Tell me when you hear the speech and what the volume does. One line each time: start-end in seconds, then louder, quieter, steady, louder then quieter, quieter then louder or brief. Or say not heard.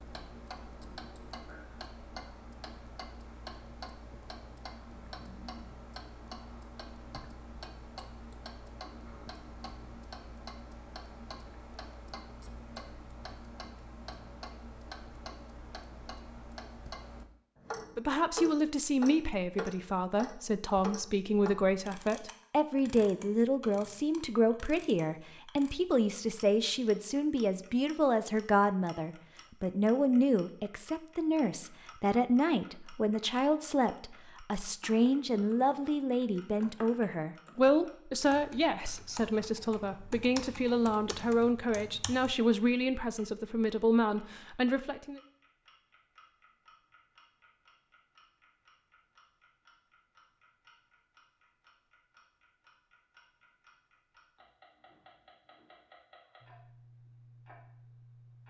17.9-45.2 steady.